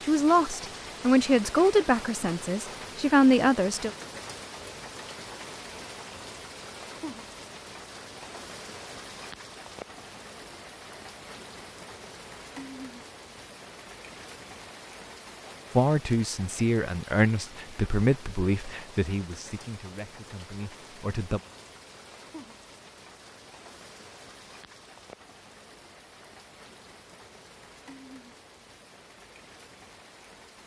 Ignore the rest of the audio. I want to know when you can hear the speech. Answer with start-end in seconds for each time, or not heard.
0.0-3.9, 15.8-21.4.